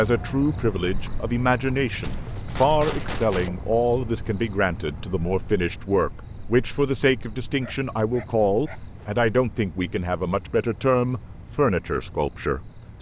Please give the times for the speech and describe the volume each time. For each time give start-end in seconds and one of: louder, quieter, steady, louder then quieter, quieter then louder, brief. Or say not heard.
0.0-12.9 steady.